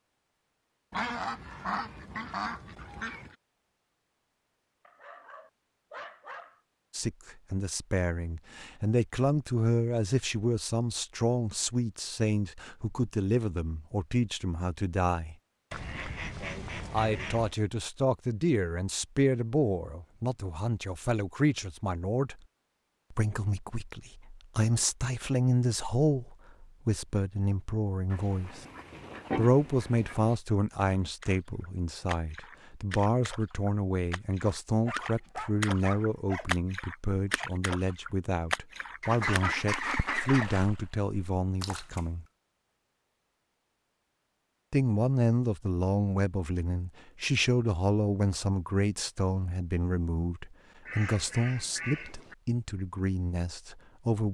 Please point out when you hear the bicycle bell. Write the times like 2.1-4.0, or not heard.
not heard.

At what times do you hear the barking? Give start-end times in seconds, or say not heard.
4.8-6.6, 34.9-36.5.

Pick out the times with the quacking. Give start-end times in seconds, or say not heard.
0.9-3.4, 15.7-17.6, 28.1-30.4, 39.0-40.6, 50.9-52.4.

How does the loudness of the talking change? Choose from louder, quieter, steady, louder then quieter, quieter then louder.
steady.